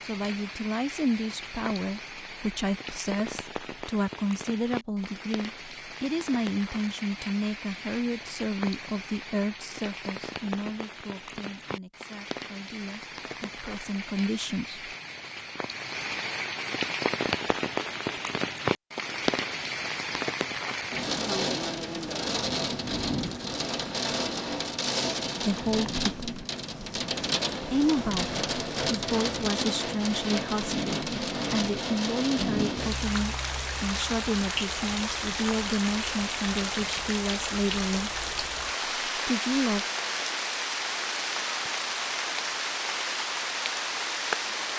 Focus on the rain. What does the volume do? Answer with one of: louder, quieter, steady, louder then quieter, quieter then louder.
louder.